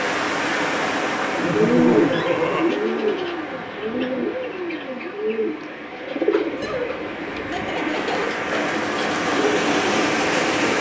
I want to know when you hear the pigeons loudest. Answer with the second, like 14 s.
2 s.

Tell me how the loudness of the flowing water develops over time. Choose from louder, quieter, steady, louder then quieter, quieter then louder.
quieter then louder.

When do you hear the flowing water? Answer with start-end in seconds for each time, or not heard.
0.0-10.7.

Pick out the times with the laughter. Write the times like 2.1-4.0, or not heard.
1.4-2.6, 6.5-8.3.